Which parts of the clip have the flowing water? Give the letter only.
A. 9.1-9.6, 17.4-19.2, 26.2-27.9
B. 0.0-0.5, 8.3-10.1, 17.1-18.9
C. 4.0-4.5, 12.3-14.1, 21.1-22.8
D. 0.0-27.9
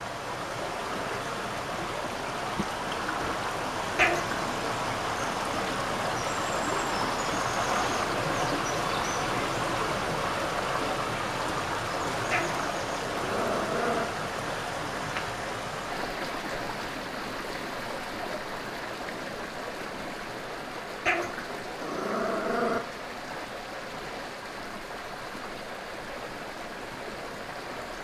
D.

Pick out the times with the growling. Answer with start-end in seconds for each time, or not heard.
4.0-4.5, 12.3-14.1, 21.1-22.8.